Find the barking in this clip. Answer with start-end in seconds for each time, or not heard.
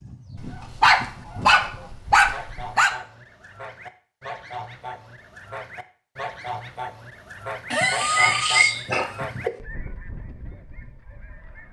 0.3-3.0, 7.7-9.5.